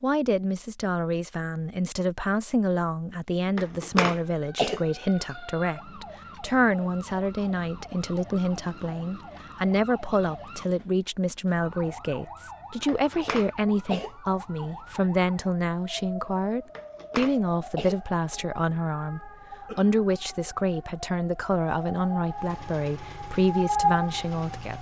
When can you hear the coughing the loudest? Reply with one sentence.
The volume of the coughing peaks at 4 seconds.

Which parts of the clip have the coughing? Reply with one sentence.
You can hear the coughing from 3.5 to 4.8 s, from 12.8 to 14.1 s and from 16.6 to 18.0 s.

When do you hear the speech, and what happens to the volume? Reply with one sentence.
You can hear the speech from 0.0 to 24.7 s, at a steady volume.